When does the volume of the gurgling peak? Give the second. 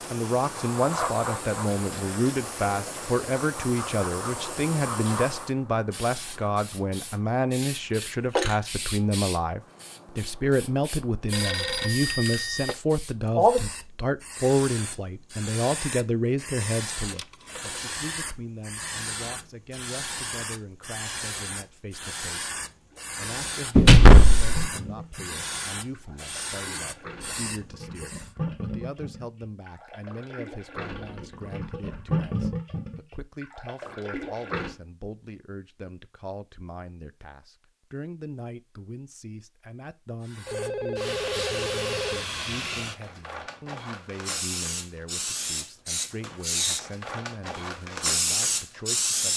32 s.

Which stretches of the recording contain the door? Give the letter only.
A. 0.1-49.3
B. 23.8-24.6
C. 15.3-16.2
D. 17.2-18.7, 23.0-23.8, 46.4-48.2
B.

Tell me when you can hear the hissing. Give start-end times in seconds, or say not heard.
0.0-28.3, 40.2-49.3.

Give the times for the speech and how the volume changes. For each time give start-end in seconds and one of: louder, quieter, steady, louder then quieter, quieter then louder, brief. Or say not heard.
0.1-49.3 quieter.